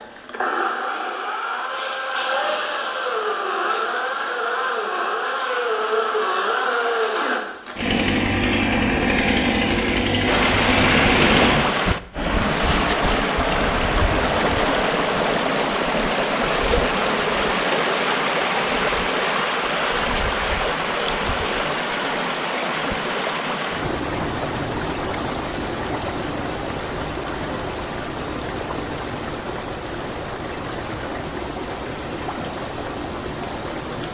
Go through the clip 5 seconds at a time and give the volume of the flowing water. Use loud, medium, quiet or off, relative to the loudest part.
off, off, loud, loud, loud, medium, medium.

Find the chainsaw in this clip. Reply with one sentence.
The chainsaw can be heard from 0.0 to 11.6 s.